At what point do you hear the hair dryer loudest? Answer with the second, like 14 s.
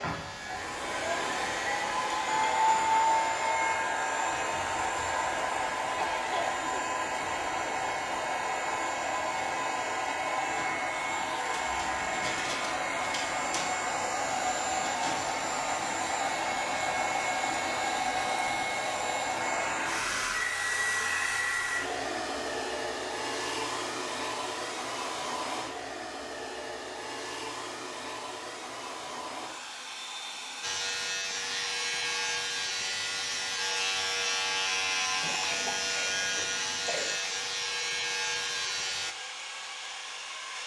3 s.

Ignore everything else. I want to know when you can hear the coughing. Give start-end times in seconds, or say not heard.
6.0-6.6, 35.2-37.2.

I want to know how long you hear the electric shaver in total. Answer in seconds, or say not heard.
12 s.